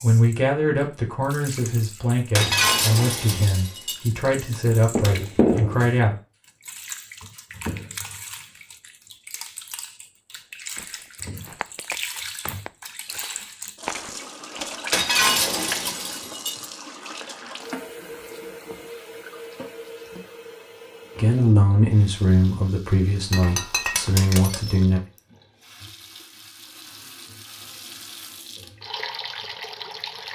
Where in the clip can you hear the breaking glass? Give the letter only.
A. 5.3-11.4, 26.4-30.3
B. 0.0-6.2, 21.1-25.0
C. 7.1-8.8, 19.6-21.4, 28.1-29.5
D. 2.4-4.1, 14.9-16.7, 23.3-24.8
D.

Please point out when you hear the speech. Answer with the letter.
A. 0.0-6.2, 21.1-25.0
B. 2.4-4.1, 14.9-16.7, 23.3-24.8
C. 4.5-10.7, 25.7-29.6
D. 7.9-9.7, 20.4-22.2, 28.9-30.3
A.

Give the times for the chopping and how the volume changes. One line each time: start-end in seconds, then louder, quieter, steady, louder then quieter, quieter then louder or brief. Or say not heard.
not heard.